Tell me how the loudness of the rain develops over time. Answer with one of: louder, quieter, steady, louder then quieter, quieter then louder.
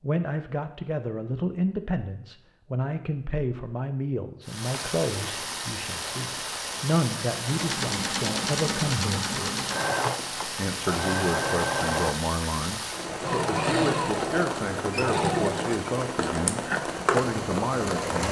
steady.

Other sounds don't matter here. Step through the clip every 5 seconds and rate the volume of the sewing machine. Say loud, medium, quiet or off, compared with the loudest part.
off, loud, loud, loud.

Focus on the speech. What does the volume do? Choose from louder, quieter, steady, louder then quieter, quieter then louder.
steady.